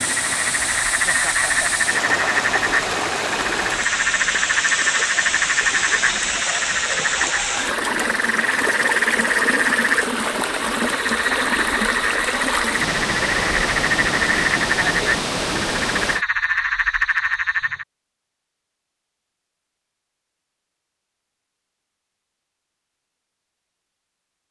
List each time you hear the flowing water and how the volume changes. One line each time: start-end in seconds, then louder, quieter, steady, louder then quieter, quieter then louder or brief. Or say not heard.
0.0-16.2 steady.